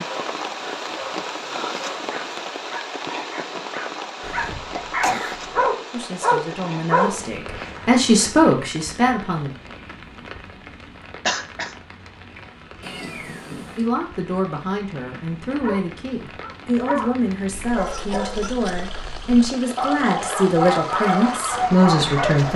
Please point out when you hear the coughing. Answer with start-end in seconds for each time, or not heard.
4.2-5.7, 11.2-11.7, 17.8-18.9.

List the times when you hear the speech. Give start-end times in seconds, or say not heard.
5.9-9.6, 13.8-22.5.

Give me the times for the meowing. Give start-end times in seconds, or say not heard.
12.8-13.9.